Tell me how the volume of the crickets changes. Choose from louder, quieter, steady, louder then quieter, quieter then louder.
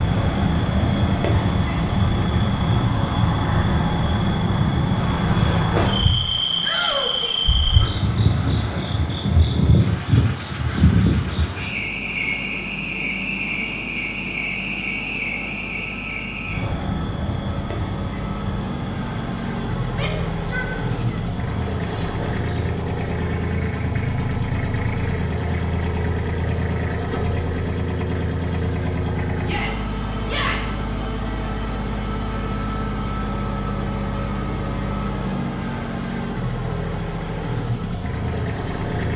quieter.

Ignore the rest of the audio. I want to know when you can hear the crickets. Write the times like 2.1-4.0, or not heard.
0.0-22.6.